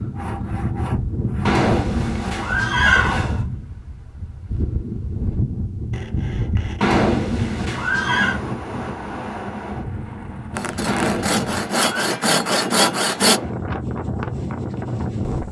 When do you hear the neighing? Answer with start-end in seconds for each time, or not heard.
1.4-3.5, 6.8-8.4, 10.8-12.2.